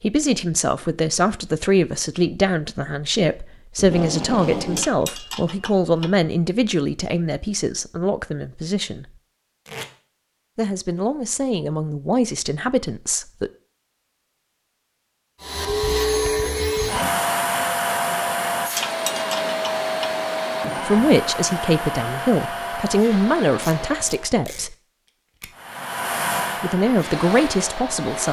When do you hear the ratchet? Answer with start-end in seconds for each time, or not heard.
4.8-6.2, 18.8-20.1.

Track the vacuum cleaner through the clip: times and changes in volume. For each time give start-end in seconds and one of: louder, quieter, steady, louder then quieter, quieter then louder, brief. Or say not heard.
15.4-24.4 quieter
25.5-28.2 brief.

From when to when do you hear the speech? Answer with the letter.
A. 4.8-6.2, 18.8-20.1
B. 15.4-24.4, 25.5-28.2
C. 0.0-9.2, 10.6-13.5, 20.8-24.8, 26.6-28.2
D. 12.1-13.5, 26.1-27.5
C.